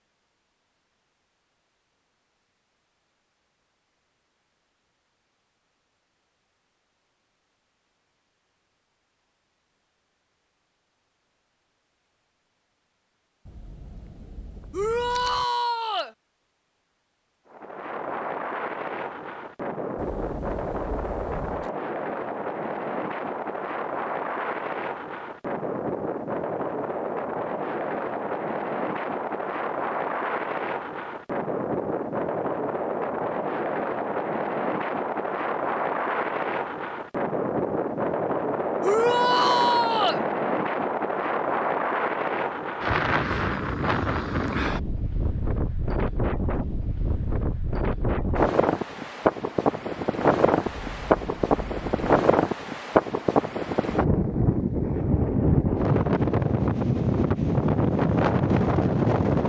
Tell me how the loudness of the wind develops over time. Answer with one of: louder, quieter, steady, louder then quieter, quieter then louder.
louder.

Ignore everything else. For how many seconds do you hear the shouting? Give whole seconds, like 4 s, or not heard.
3 s.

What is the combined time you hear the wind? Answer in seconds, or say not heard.
42 s.